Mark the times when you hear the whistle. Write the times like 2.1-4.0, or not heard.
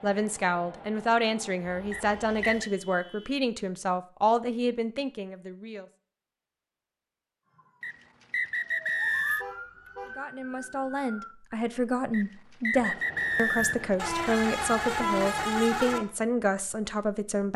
1.9-2.7, 7.8-9.4, 12.1-13.9.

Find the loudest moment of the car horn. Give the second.
15 s.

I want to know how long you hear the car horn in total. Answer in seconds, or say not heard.
5 s.